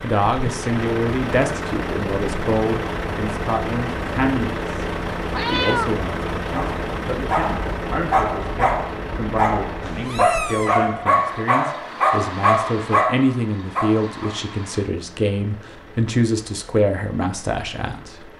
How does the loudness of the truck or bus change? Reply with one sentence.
The volume of the truck or bus goes down.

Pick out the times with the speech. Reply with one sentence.
The speech can be heard from 0.0 to 4.8 s and from 5.5 to 18.2 s.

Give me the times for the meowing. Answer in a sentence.
The meowing can be heard from 5.3 to 6.0 s and from 9.8 to 10.8 s.